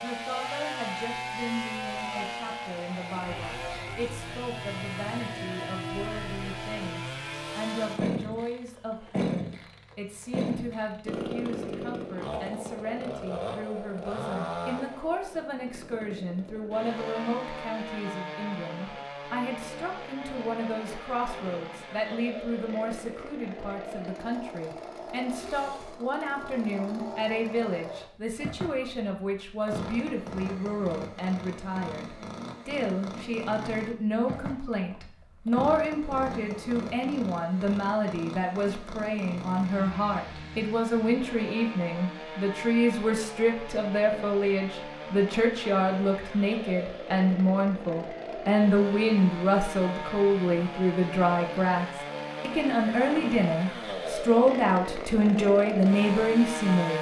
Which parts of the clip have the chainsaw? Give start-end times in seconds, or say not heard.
0.0-56.9.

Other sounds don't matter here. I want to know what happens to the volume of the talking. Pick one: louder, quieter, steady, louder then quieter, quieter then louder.
louder.